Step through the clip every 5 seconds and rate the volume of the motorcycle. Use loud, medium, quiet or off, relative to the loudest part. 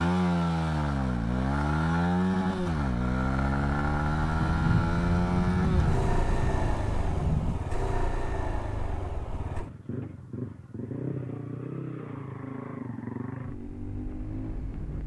loud, medium, medium.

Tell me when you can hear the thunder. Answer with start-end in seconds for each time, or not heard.
4.4-7.6.